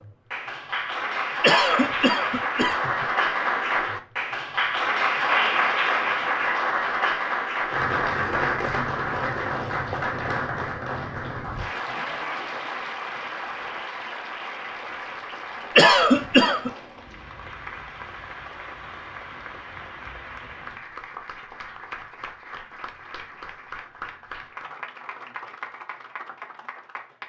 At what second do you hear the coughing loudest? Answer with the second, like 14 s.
16 s.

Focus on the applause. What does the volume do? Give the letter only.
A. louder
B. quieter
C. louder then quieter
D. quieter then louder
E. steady
B.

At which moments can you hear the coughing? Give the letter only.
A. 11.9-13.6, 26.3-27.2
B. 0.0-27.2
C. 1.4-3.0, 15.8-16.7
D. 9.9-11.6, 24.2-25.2
C.